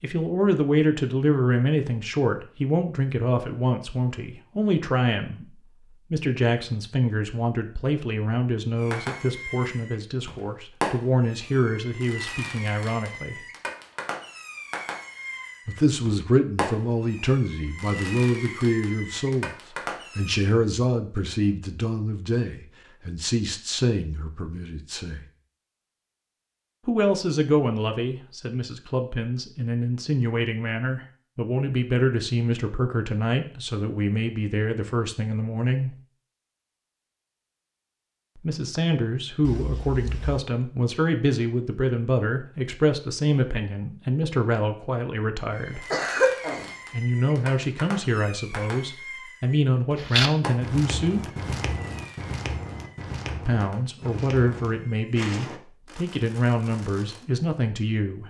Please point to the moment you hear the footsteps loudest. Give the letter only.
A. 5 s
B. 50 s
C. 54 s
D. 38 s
B.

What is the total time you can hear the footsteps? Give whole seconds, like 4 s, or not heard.
6 s.